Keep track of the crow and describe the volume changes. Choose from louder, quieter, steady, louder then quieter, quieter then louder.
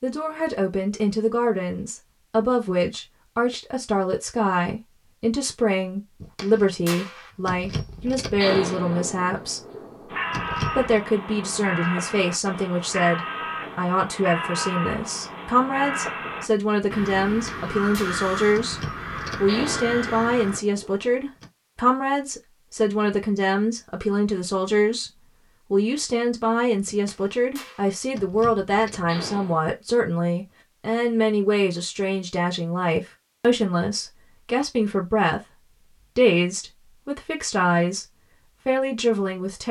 steady.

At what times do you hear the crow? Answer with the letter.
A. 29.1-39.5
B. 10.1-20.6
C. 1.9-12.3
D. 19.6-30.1
B.